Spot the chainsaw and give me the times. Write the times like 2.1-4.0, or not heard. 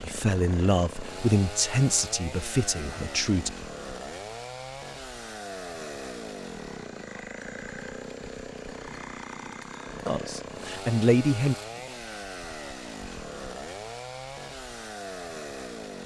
0.0-16.0.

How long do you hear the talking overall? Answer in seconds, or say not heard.
5 s.